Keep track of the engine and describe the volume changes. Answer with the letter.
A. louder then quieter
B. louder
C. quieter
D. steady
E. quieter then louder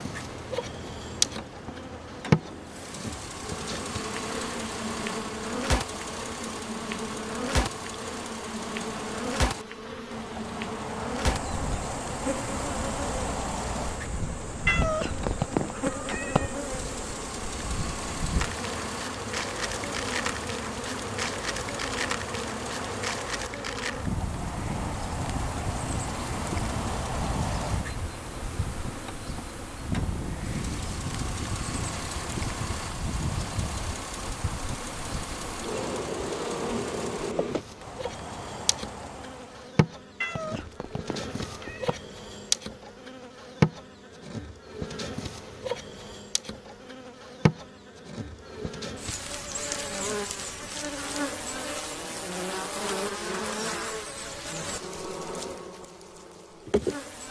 D.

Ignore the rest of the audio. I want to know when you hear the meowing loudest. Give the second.
15 s.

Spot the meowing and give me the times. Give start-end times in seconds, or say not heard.
14.7-16.6, 40.2-42.0.